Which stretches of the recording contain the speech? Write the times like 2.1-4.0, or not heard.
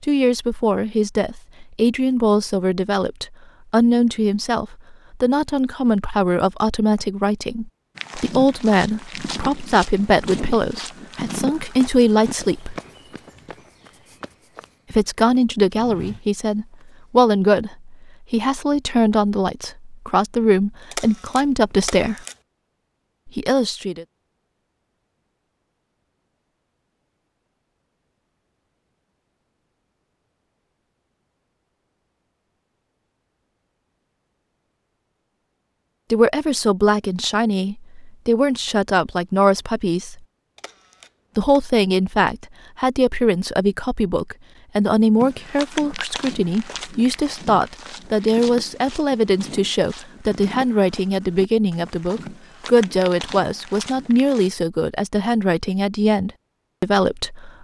0.0-12.8, 14.9-22.2, 23.2-24.1, 36.1-40.2, 41.4-57.5.